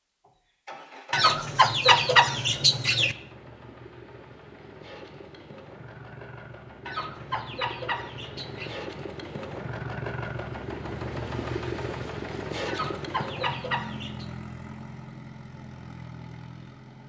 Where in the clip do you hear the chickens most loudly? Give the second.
2 s.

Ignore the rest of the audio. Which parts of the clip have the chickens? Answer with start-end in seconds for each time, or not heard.
1.1-3.1, 6.8-8.8, 12.7-14.3.